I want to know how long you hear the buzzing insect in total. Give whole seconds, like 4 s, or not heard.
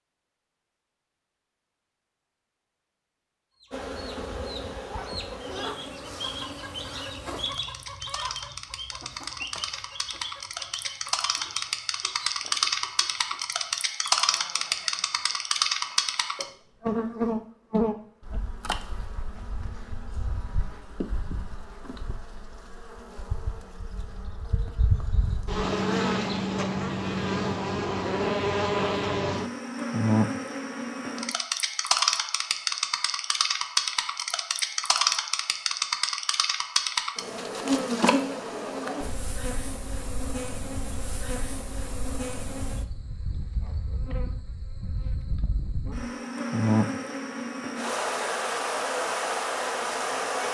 47 s.